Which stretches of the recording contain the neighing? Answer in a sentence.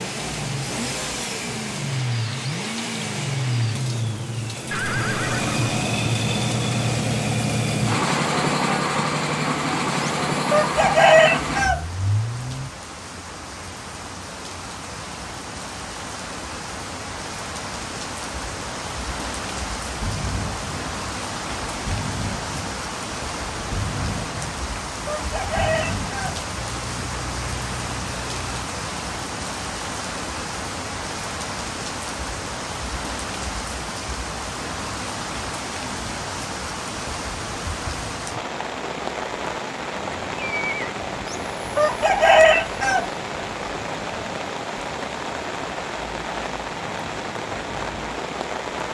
The neighing can be heard from 4.7 to 5.7 s and from 40.1 to 40.9 s.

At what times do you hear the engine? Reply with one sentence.
You can hear the engine from 0.0 to 12.7 s and from 19.9 to 28.7 s.